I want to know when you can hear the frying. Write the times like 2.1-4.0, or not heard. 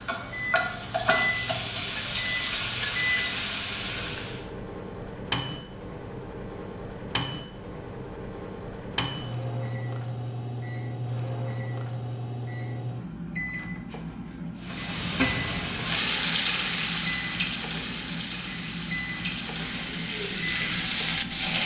0.0-4.5, 14.6-21.6.